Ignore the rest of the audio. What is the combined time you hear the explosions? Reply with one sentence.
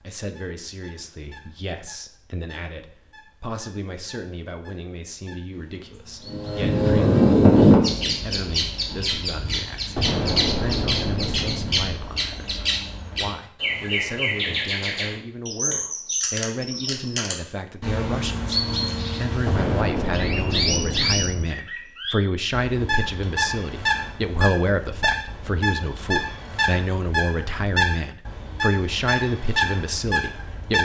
You can hear the explosions for 4 seconds altogether.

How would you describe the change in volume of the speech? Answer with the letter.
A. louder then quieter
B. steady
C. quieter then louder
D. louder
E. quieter
D.